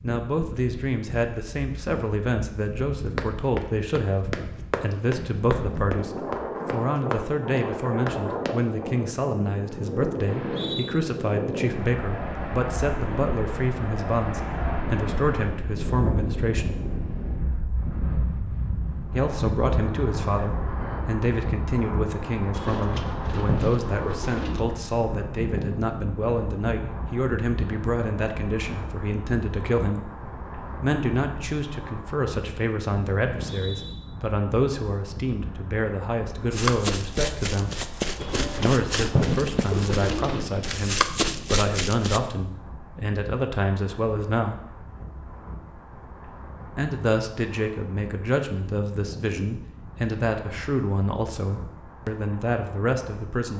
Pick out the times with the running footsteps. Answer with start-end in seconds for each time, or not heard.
3.1-8.7, 36.5-42.2.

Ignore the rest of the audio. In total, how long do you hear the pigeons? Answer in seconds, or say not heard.
5 s.